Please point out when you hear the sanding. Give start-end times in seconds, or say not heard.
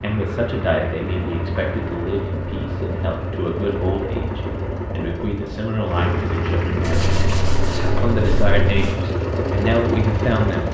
6.8-8.9.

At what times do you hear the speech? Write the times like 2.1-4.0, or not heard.
0.0-7.0, 8.0-10.6.